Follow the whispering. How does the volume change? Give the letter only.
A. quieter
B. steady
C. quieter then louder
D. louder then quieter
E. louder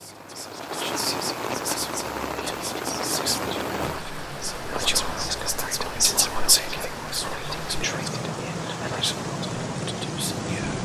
D.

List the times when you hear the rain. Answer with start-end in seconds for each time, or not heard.
0.0-10.8.